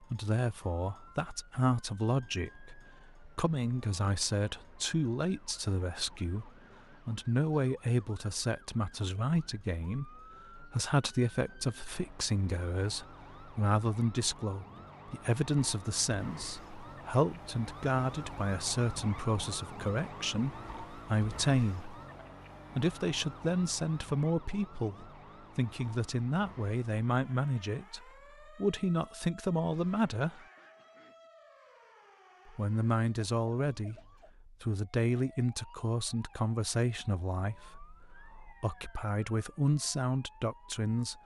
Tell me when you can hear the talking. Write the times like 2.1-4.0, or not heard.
0.0-21.9, 22.8-30.4, 32.5-41.2.